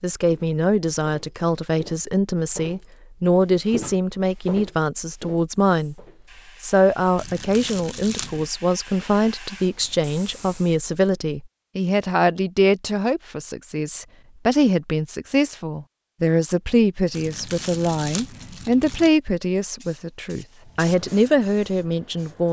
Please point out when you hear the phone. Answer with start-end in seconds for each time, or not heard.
not heard.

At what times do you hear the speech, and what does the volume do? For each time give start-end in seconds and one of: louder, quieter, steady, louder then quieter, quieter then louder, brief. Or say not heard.
0.0-6.0 steady
6.6-22.4 steady.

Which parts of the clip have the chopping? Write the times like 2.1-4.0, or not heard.
not heard.